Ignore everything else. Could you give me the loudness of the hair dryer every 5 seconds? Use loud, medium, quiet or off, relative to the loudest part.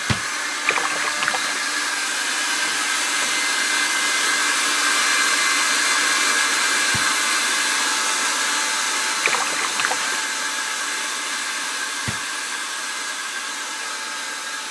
loud, loud, medium.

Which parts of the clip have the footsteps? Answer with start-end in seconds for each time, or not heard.
not heard.